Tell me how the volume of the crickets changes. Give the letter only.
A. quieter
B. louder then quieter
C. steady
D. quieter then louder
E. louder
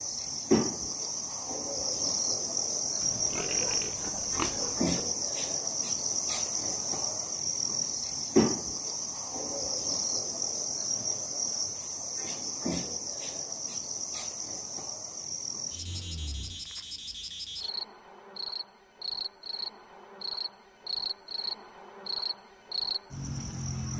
A.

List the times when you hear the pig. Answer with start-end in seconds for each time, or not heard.
3.0-5.0.